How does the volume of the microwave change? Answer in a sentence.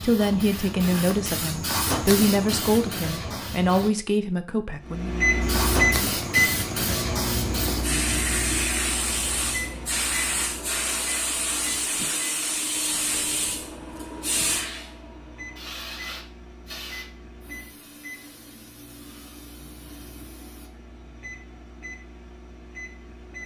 The volume of the microwave goes down.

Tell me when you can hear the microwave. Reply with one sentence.
The microwave can be heard from 4.8 to 23.4 s.